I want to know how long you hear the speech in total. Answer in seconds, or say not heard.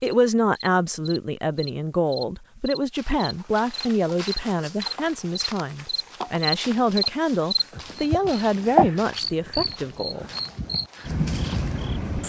10 s.